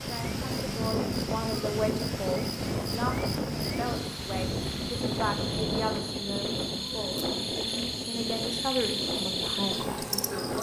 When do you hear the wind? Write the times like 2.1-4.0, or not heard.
0.0-10.5.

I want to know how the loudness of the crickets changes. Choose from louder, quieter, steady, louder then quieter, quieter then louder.
louder.